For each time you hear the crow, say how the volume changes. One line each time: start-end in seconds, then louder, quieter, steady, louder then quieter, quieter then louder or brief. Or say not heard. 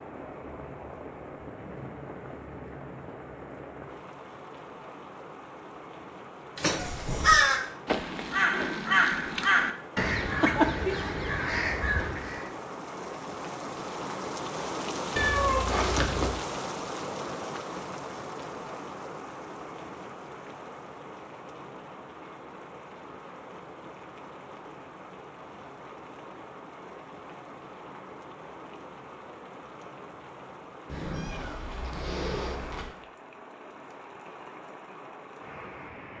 6.5-12.5 quieter.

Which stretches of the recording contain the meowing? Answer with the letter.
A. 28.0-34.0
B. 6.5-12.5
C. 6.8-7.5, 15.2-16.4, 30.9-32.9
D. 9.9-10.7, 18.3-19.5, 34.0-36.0
C.